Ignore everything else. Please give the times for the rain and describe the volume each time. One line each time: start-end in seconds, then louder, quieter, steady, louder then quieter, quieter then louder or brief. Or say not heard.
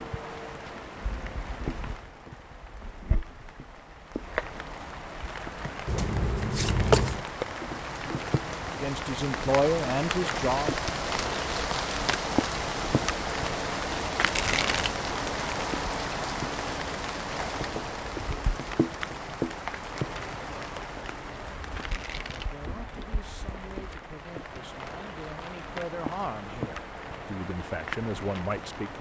0.0-28.9 louder then quieter.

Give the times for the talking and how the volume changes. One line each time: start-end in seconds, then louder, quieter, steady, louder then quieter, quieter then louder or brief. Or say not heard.
8.8-10.7 brief
22.3-28.9 louder.